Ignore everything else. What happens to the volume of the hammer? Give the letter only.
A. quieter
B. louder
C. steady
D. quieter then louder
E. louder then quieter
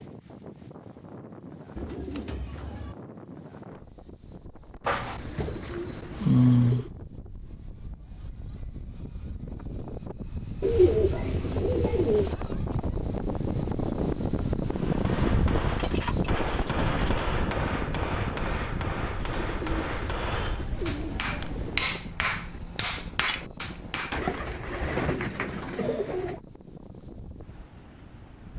C.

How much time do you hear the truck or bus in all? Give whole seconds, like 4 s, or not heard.
not heard.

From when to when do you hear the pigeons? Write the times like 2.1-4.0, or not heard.
1.8-3.0, 4.8-6.9, 10.6-12.3, 15.8-17.4, 19.1-21.9, 24.1-26.4.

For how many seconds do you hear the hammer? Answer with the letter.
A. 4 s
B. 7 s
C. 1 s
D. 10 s
D.